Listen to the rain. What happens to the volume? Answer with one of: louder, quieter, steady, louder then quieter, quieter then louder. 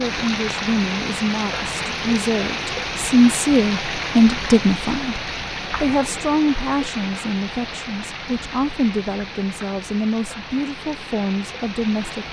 quieter.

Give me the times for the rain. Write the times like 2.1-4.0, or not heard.
0.0-12.2.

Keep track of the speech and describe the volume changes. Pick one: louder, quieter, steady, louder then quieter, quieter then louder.
louder then quieter.